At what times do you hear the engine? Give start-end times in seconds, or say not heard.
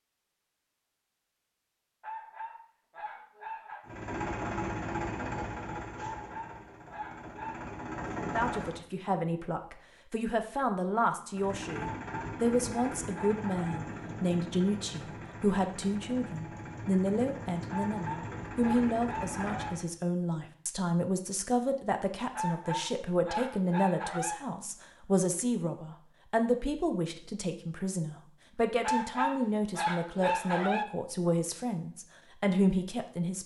3.9-8.8, 11.3-19.9.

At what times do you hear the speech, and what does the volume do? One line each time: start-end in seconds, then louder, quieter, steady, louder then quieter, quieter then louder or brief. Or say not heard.
8.2-33.4 steady.